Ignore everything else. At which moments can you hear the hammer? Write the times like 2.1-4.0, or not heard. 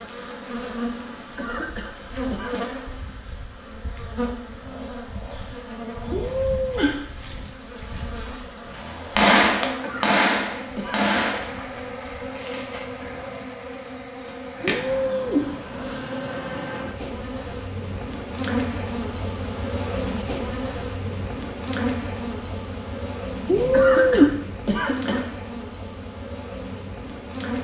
9.2-11.7.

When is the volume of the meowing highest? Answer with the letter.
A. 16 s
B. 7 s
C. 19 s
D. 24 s
D.